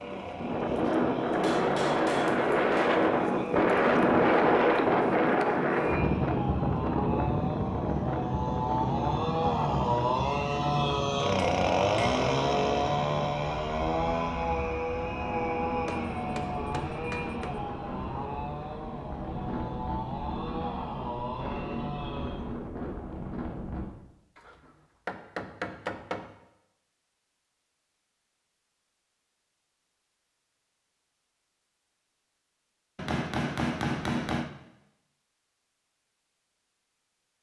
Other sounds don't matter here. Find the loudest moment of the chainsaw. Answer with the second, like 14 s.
12 s.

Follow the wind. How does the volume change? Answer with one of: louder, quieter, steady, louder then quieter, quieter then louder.
quieter.